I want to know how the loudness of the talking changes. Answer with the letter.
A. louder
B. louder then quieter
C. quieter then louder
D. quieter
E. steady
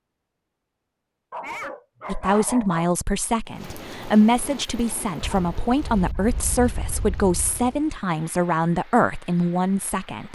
E.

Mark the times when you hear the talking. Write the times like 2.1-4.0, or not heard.
2.0-10.2.